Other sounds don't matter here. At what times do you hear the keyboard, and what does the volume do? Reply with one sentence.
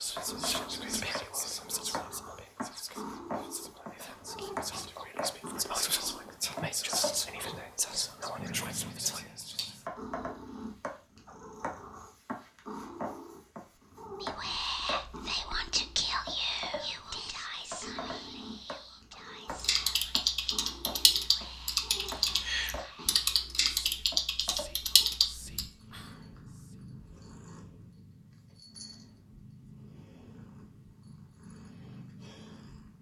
The keyboard can be heard from 19.4 to 25.6 s, at a steady volume.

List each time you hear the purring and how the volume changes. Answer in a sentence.
You can hear the purring from 0.1 to 32.9 s, getting quieter.